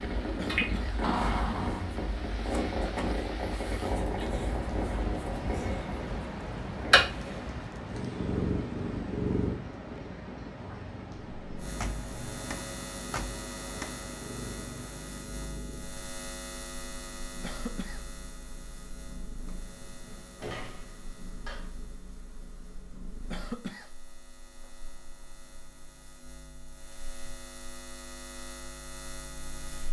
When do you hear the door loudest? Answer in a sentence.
The volume of the door peaks at 1 second.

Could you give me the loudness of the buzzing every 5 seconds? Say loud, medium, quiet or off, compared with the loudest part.
off, off, loud, loud, quiet, medium.